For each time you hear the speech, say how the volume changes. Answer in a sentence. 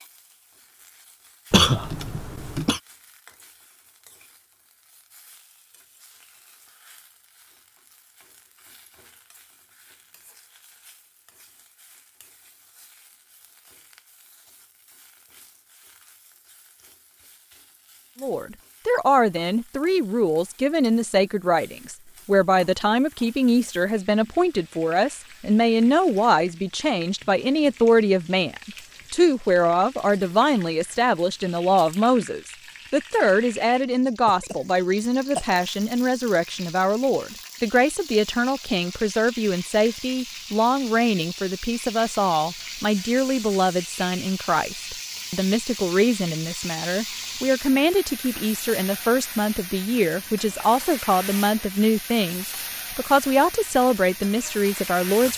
The speech can be heard from 18.2 to 55.3 s, at a steady volume.